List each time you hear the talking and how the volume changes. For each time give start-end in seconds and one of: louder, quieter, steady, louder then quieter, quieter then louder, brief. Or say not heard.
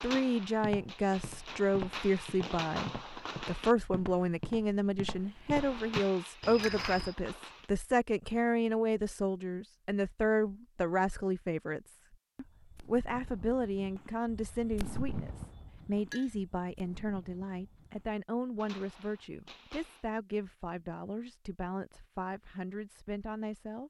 0.0-23.8 quieter.